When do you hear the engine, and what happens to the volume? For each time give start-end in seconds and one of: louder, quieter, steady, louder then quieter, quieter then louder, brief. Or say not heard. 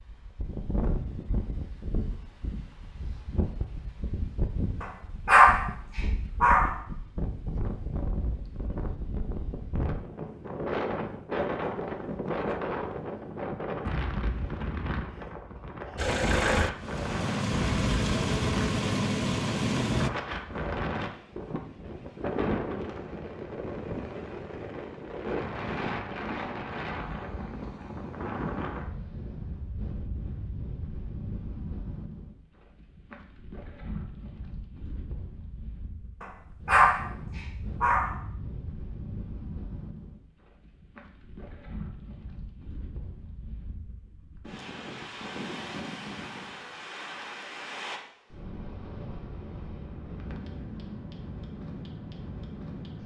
15.9-20.1 steady.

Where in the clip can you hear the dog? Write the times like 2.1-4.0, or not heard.
4.8-6.7, 36.2-38.1.